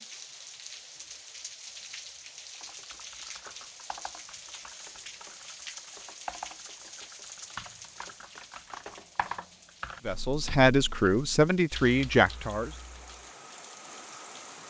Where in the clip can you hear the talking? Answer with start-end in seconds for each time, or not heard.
10.1-12.7.